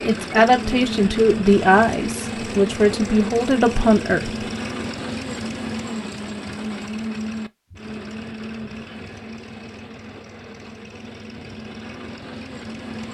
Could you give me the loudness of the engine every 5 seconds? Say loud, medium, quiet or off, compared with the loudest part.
loud, loud, medium.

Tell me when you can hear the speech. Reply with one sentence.
The speech can be heard from 0.0 to 4.3 s.